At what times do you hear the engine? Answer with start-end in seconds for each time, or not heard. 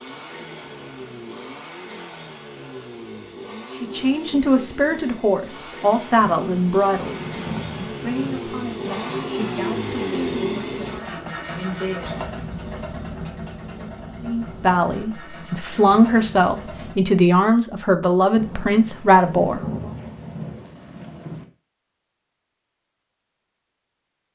0.0-16.9.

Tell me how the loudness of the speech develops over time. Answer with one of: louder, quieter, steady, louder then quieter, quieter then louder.
quieter then louder.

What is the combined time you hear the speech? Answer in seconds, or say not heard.
14 s.